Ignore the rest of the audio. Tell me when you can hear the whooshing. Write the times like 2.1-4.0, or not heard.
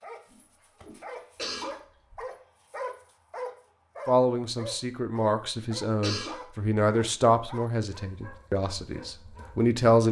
0.2-1.2.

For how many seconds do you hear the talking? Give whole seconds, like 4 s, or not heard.
6 s.